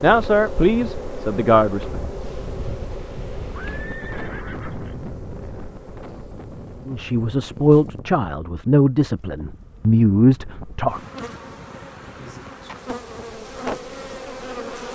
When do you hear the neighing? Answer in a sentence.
The neighing can be heard from 3.5 to 5.0 s.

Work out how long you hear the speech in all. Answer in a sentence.
The speech can be heard for 6 seconds in total.